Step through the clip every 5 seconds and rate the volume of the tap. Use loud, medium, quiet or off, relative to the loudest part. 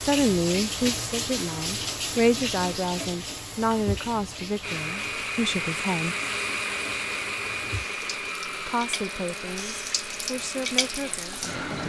loud, medium, loud.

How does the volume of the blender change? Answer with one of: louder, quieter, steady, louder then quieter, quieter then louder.
quieter.